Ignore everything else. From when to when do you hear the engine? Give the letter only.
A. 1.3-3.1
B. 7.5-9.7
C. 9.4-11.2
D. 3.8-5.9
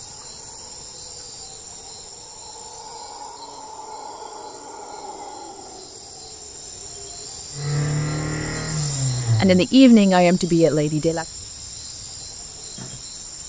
B.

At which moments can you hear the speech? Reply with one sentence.
The speech can be heard from 9.4 to 11.2 s.